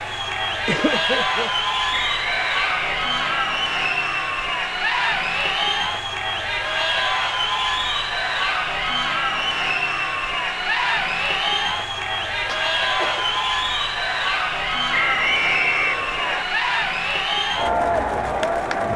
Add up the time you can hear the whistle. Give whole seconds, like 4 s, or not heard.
3 s.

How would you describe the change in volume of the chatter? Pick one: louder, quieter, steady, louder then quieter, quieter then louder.
steady.